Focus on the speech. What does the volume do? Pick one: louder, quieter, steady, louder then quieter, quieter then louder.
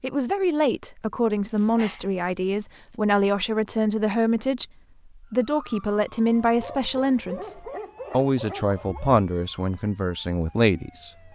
steady.